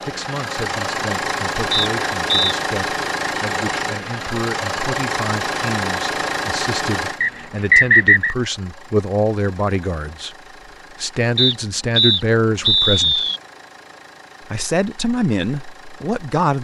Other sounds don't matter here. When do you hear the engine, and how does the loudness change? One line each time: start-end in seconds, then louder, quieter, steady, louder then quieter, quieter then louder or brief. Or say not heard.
0.0-16.5 quieter.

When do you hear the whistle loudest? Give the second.
8 s.